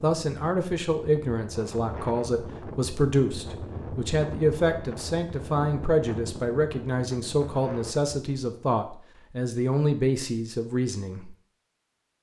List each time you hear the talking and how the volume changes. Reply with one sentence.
The talking can be heard from 0.0 to 11.3 s, at a steady volume.